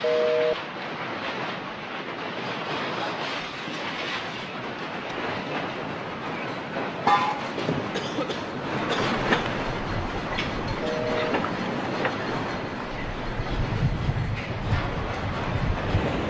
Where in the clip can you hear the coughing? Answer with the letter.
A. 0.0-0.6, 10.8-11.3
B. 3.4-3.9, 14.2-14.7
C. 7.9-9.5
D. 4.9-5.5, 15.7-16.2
C.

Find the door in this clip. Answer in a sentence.
You can't hear the door here.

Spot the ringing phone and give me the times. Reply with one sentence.
You can hear the ringing phone from 0.0 to 0.6 s and from 10.8 to 11.3 s.